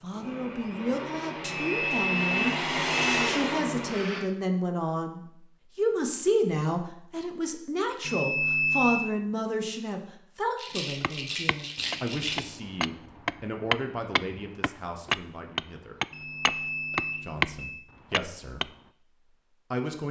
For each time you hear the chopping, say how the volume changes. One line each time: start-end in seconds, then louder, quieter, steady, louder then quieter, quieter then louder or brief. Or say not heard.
11.0-17.4 louder
18.1-18.6 brief.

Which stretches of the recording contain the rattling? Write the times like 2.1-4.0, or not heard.
10.6-12.3.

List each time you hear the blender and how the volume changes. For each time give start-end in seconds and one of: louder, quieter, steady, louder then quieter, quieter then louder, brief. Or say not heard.
0.0-4.2 louder.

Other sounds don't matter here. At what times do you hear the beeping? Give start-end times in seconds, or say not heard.
1.4-3.4, 8.1-9.1, 16.1-17.9.